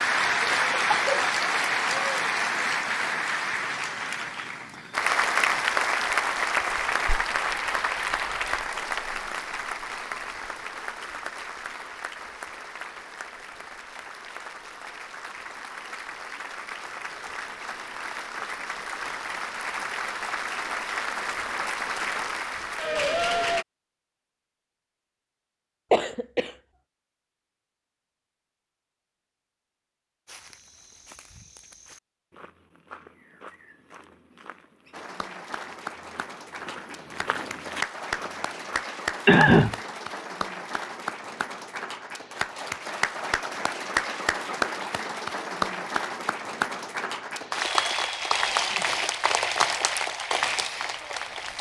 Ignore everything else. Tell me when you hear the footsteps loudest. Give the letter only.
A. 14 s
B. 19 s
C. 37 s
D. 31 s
C.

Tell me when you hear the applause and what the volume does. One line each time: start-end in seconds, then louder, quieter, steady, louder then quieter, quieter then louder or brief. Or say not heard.
0.0-23.6 quieter then louder
34.9-51.5 louder.